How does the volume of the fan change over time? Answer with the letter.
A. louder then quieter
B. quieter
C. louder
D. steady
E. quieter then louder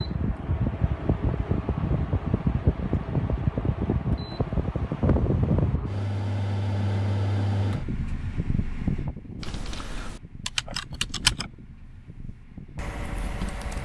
B.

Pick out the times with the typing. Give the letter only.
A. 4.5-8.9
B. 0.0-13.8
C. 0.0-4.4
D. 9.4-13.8
D.